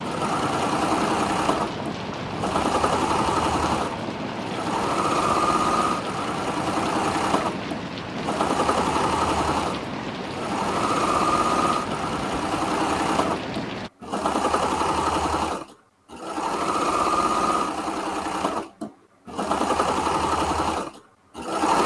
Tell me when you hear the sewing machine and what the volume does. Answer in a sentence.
The sewing machine can be heard from 0.0 to 21.8 s, at a steady volume.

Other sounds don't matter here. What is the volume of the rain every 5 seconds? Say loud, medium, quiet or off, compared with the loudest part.
loud, loud, loud, off, off.